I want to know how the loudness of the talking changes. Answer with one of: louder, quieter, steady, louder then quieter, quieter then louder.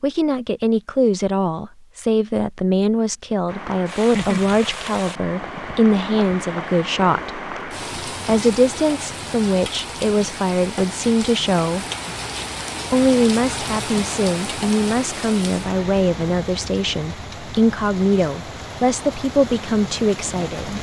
steady.